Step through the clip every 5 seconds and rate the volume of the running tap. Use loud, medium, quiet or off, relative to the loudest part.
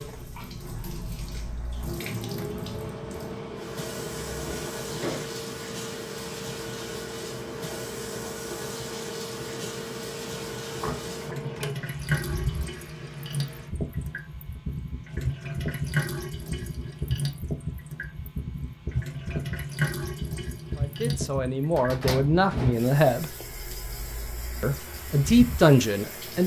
medium, medium, loud, loud, medium, medium.